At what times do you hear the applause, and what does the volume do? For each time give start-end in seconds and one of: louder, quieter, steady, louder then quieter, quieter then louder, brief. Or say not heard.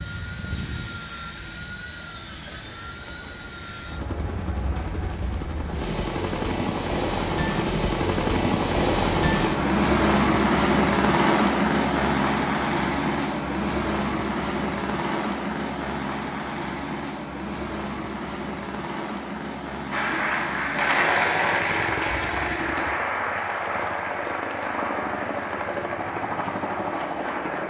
19.9-27.6 quieter.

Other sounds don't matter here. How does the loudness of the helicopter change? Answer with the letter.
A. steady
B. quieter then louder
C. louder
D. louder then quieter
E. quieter
D.